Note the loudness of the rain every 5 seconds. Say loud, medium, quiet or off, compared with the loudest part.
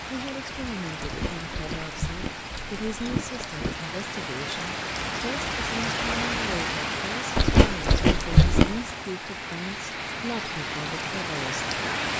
medium, loud, loud.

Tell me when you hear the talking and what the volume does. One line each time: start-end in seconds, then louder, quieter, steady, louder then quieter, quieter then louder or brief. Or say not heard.
0.1-11.6 steady.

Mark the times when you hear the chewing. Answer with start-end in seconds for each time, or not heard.
1.0-3.8, 7.3-8.8.